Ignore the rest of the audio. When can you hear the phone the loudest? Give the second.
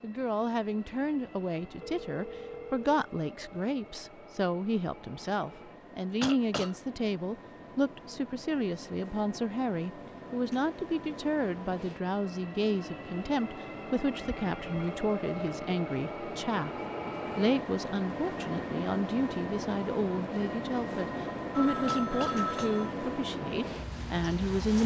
22 s.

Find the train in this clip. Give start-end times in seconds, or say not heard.
0.0-24.8.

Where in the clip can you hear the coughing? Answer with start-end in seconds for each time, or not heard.
6.2-6.8, 21.9-22.8.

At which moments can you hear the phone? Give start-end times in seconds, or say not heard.
1.8-2.9, 14.2-14.9, 21.6-22.9.